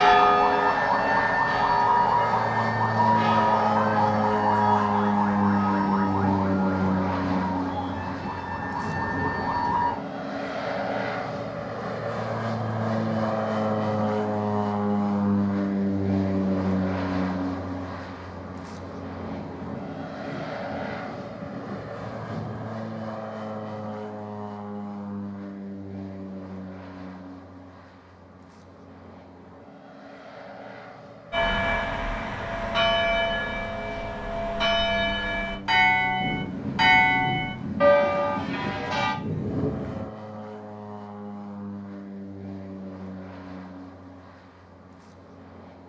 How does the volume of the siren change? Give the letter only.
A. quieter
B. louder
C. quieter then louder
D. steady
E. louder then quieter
A.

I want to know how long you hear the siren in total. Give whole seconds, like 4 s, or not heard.
10 s.